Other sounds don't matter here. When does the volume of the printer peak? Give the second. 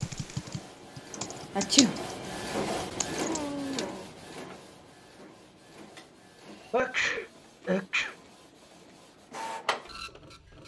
3 s.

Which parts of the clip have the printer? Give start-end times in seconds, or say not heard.
0.1-10.6.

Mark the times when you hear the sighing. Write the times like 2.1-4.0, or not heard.
3.2-4.2.